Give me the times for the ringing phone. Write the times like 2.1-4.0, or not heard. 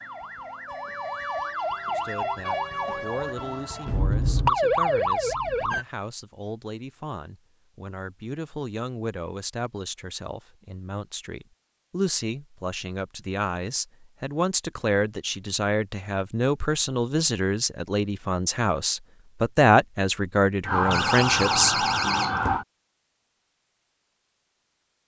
not heard.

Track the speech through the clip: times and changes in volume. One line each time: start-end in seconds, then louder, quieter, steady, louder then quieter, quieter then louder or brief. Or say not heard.
1.9-21.8 louder.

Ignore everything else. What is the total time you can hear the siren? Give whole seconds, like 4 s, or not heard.
8 s.